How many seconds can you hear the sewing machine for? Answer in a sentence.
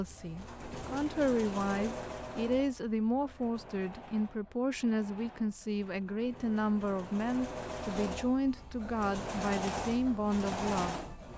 You can hear the sewing machine for 11 seconds altogether.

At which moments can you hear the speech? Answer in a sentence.
The speech can be heard from 0.0 to 11.1 s.